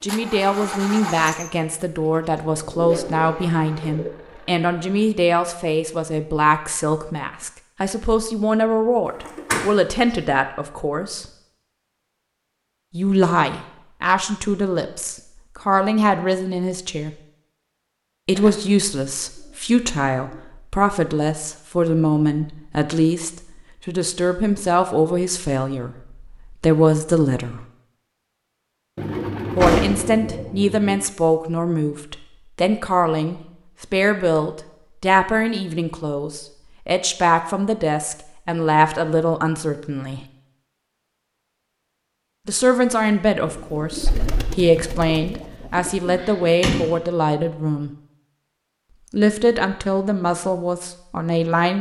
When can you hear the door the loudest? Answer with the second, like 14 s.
30 s.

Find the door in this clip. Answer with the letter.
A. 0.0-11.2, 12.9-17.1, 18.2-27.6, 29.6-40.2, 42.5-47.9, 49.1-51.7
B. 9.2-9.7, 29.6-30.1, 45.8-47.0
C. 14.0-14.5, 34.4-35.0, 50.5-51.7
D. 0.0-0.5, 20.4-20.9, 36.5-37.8
B.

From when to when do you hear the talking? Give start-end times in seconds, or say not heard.
0.0-11.2, 12.9-17.1, 18.2-27.6, 29.6-40.2, 42.5-47.9, 49.1-51.7.